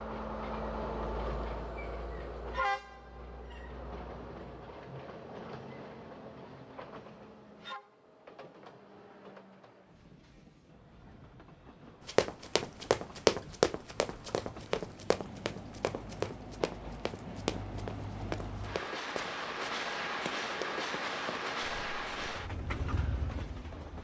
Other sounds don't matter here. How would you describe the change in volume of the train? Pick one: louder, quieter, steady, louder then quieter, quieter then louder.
quieter then louder.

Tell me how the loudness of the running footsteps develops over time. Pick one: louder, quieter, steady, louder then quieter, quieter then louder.
quieter.